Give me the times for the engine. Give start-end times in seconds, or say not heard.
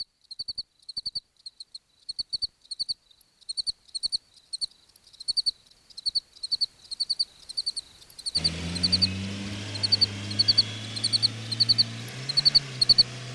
8.3-13.3.